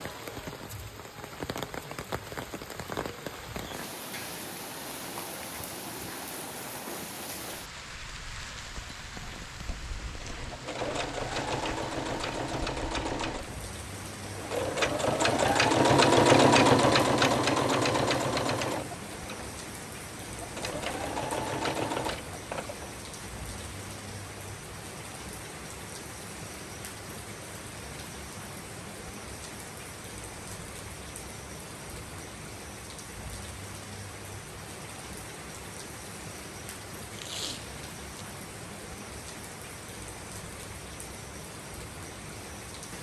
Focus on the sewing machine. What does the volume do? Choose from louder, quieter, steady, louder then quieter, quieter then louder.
louder then quieter.